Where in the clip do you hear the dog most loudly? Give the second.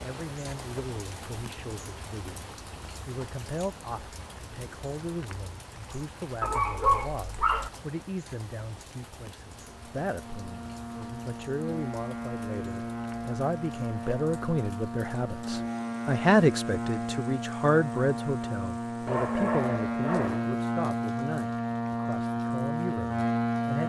7 s.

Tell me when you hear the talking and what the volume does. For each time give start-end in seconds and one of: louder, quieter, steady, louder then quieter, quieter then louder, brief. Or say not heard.
0.0-23.8 louder then quieter.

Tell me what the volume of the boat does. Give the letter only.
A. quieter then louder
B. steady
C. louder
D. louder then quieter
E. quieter
C.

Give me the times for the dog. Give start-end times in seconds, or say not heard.
6.4-7.7, 19.1-20.5.